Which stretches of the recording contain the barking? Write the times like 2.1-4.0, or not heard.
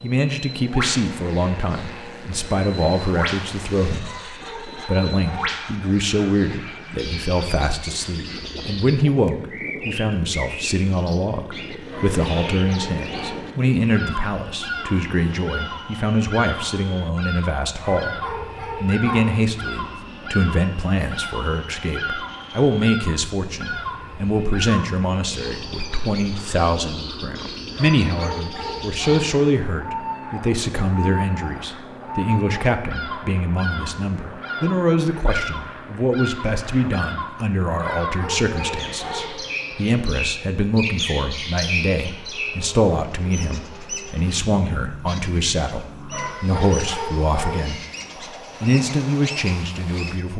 4.0-5.5, 11.9-13.4, 17.8-19.4, 27.8-29.3, 37.8-39.3, 46.1-47.6.